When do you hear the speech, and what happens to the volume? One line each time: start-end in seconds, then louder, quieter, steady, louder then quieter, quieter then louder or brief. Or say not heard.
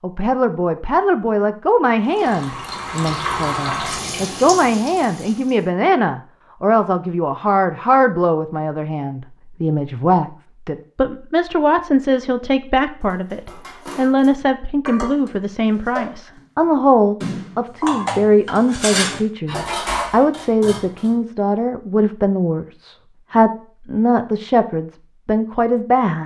0.0-26.2 steady.